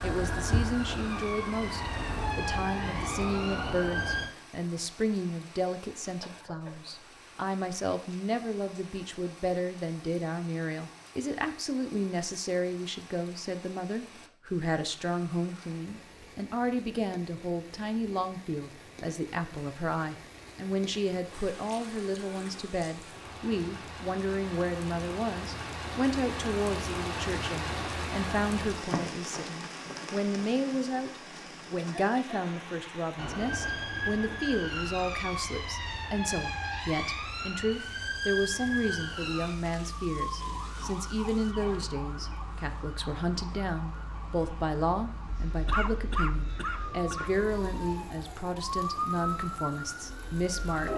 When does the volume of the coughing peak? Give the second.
46 s.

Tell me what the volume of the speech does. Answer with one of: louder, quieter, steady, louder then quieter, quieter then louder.
steady.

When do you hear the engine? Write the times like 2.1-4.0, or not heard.
0.0-2.3.